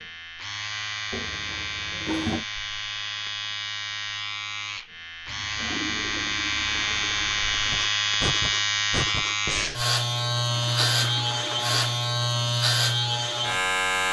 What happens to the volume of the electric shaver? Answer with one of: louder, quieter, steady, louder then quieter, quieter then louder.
louder.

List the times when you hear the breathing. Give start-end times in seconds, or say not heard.
7.7-9.8.